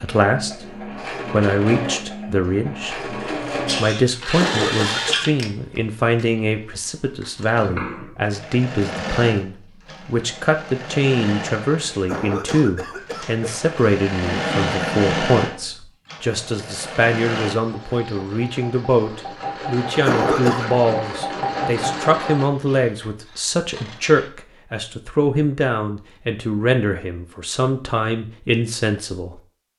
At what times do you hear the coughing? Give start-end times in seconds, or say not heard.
4.3-5.3, 12.1-13.7, 20.1-20.8.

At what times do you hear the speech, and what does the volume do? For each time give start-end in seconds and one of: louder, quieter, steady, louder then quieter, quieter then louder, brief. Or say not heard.
0.0-0.7 brief
1.3-29.4 steady.